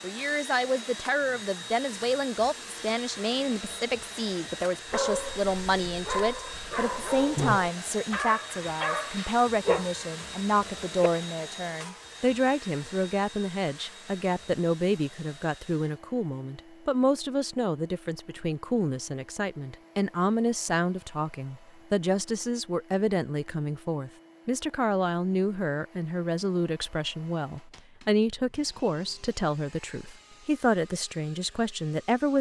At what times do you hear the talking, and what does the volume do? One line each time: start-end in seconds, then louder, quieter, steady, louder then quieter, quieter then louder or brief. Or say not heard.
0.0-32.3 steady.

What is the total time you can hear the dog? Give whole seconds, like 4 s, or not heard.
6 s.